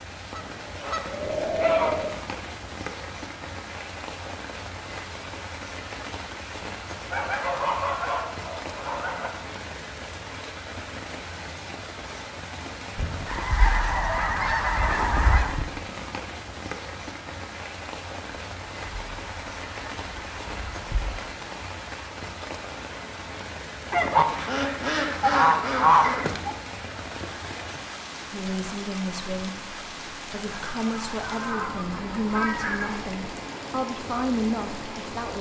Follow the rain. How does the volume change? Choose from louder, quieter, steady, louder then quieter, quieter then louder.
steady.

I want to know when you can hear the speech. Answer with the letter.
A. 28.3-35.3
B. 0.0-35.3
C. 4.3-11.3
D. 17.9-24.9
A.